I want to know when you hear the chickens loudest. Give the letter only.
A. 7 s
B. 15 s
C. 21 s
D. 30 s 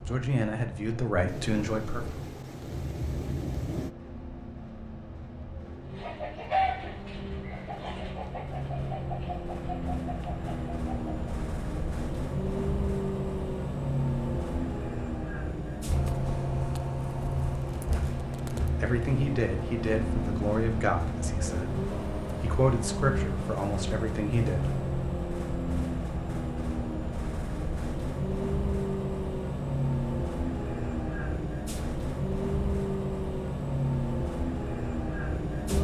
A.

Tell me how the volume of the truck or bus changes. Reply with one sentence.
The volume of the truck or bus goes up.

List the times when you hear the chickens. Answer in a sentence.
You can hear the chickens from 6.0 to 11.1 s.